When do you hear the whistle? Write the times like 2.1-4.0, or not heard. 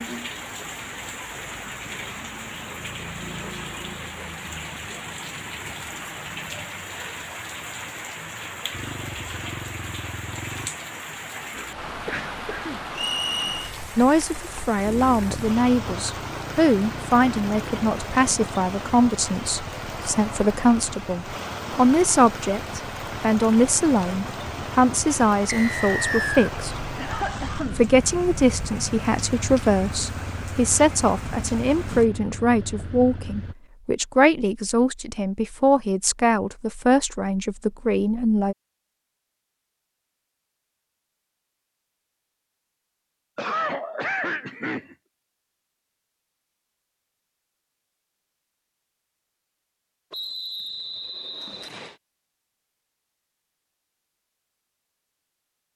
12.9-13.7, 25.4-26.5, 50.1-52.0.